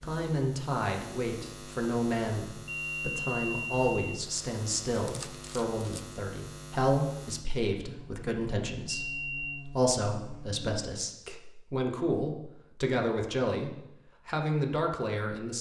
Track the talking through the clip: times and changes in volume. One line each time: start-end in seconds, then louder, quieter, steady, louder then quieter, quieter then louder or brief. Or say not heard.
0.0-15.5 steady.